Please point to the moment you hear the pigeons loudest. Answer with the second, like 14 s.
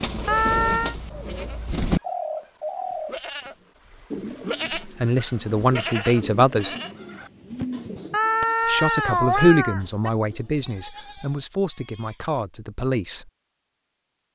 2 s.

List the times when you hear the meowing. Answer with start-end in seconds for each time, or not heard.
0.2-0.9, 8.1-10.1.